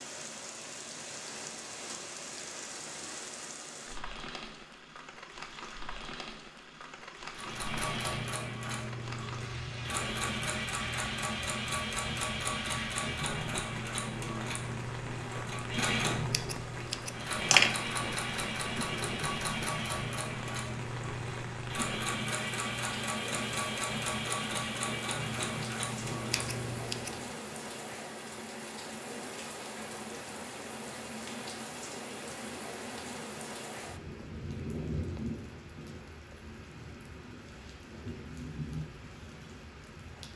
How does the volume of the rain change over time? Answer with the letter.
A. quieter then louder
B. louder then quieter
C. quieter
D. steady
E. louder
D.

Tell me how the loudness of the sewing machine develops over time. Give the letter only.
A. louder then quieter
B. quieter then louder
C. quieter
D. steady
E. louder
D.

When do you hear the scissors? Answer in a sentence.
The scissors can be heard from 16.3 to 17.8 s and from 26.3 to 27.2 s.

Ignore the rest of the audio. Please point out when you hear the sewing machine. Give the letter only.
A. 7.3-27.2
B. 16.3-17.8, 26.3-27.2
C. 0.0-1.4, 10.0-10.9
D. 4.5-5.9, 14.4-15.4
A.